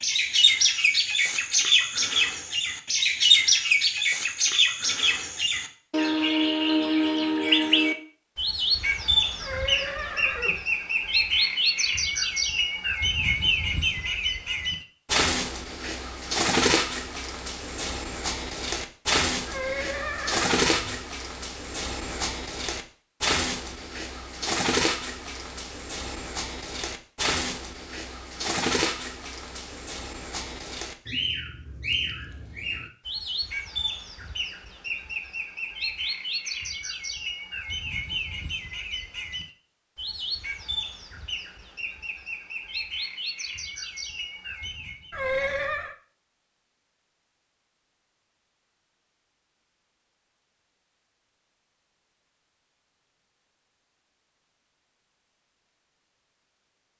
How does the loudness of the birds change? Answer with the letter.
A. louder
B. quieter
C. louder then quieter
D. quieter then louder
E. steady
B.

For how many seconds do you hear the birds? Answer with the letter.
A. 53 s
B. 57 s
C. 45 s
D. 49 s
C.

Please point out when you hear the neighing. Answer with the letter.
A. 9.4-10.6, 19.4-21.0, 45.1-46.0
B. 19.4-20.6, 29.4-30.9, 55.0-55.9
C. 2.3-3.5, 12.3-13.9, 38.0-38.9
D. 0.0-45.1
A.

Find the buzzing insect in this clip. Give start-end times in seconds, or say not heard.
not heard.